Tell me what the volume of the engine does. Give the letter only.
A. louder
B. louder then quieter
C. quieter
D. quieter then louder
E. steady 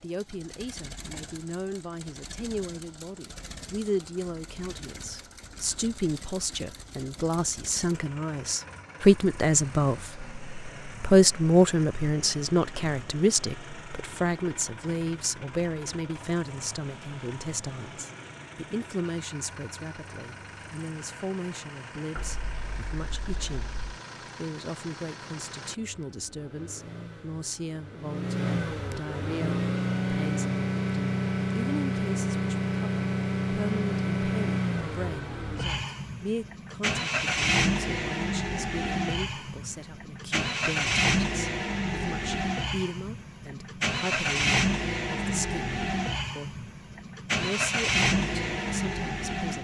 A.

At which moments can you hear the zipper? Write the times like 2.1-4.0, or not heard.
22.1-23.8.